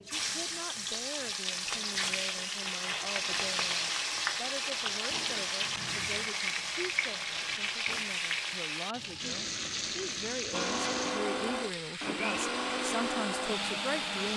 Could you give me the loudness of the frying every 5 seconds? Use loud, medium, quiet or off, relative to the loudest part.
loud, loud, medium.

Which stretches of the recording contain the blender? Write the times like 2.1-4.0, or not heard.
10.5-14.3.